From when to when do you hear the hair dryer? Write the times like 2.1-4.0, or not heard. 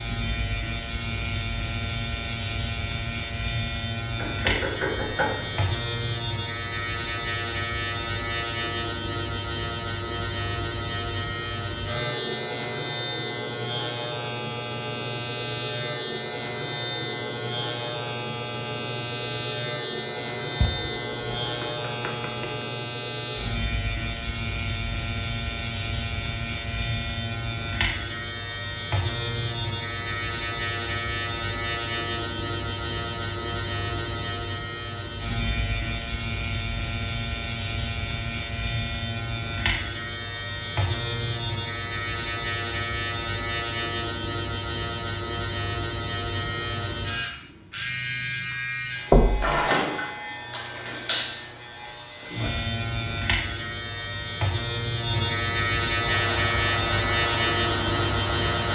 56.0-58.7.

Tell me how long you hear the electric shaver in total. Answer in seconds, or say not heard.
59 s.